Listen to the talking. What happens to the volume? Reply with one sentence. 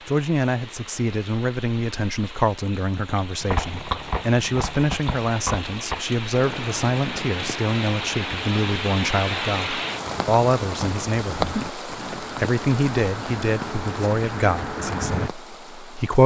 The loudness of the talking stays about the same.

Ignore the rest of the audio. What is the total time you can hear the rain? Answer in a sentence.
The rain can be heard for 16 seconds in total.